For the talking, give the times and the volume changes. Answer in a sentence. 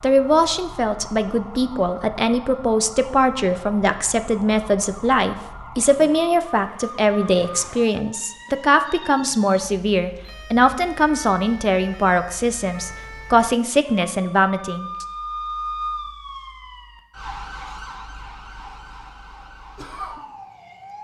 The talking can be heard from 0.0 to 15.1 s, at a steady volume.